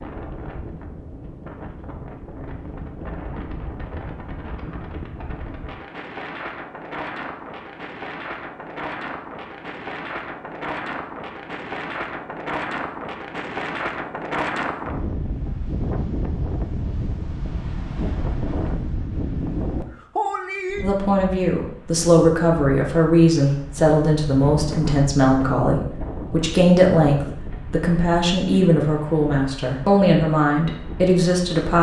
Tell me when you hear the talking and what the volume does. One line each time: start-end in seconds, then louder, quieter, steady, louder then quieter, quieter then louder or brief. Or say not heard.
20.8-31.7 steady.